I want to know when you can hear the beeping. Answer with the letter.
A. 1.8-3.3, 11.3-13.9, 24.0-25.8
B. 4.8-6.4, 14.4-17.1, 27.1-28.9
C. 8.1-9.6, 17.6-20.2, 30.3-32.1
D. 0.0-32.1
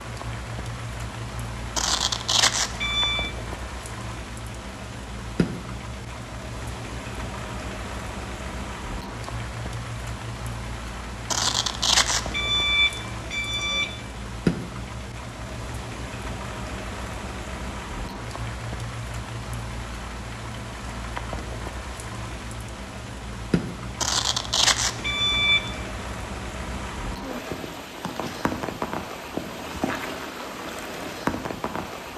A.